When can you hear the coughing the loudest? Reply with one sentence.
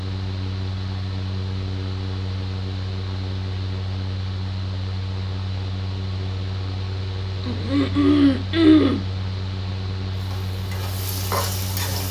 The loudest moment of the coughing is at 9 seconds.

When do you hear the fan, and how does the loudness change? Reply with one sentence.
The fan can be heard from 0.0 to 12.0 s, at a steady volume.